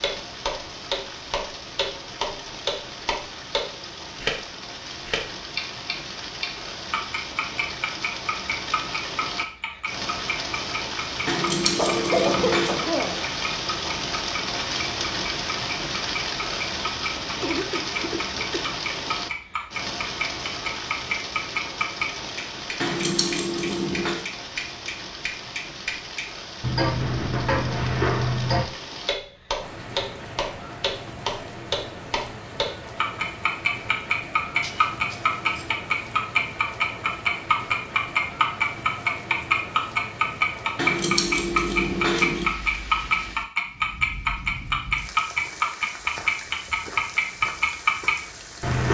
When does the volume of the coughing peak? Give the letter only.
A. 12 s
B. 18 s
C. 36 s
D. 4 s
A.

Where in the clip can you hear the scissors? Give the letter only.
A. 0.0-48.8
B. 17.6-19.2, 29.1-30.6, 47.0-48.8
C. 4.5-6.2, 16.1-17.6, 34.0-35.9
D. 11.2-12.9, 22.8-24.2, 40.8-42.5
D.